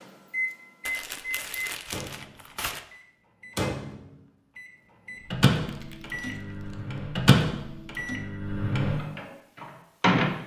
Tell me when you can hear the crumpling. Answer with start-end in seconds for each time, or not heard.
0.8-2.9, 5.7-7.0.